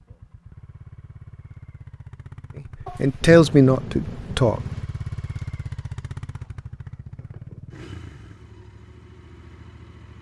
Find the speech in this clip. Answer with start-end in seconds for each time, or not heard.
3.0-4.6.